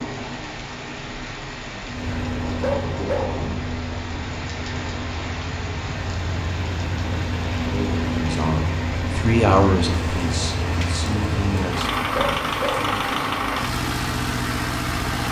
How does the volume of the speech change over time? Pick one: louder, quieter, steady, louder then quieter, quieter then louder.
louder then quieter.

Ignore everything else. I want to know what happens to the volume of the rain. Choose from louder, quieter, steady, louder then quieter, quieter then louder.
steady.